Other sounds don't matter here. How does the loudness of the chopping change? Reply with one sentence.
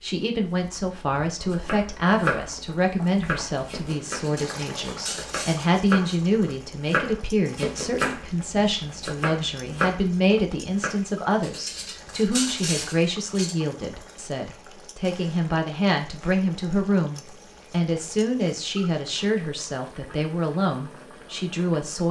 The loudness of the chopping goes down, then up.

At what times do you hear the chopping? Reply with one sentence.
You can hear the chopping from 1.5 to 10.9 s.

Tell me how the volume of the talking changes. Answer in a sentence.
The volume of the talking stays about the same.